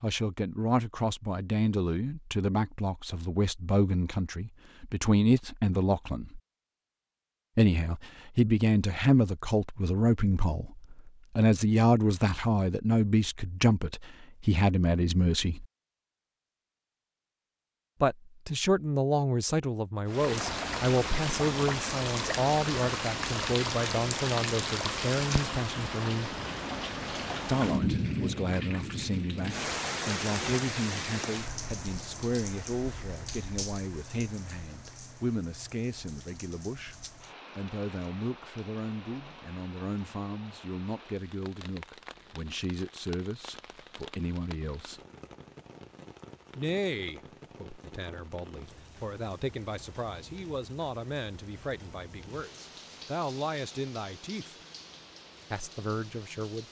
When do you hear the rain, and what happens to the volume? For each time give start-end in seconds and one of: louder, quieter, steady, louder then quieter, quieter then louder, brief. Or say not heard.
20.1-56.6 quieter.